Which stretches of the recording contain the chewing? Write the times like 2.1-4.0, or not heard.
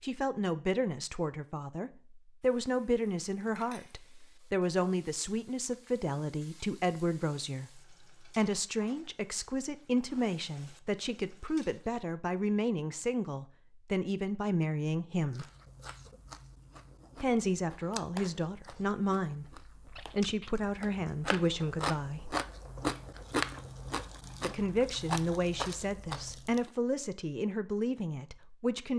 15.3-26.7.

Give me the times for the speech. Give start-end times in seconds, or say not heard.
0.0-15.4, 17.2-22.4, 24.4-28.9.